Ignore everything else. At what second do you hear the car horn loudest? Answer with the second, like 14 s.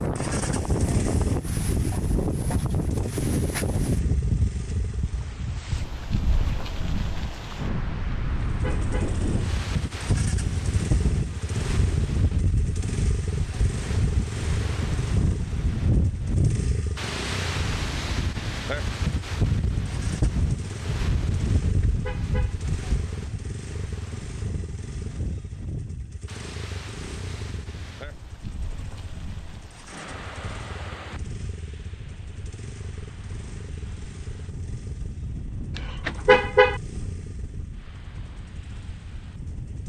36 s.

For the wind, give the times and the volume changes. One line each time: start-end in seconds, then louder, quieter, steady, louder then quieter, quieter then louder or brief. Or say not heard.
0.0-39.8 quieter.